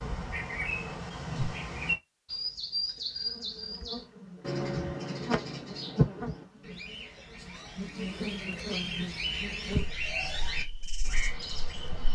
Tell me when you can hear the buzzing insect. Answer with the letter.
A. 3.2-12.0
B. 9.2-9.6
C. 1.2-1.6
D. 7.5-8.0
A.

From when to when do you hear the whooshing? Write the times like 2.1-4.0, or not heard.
1.2-1.6.